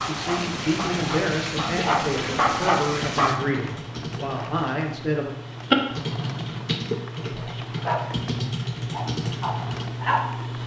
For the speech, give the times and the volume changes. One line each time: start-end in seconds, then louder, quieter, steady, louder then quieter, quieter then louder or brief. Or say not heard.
0.0-5.3 steady.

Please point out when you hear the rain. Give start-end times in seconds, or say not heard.
0.0-10.6.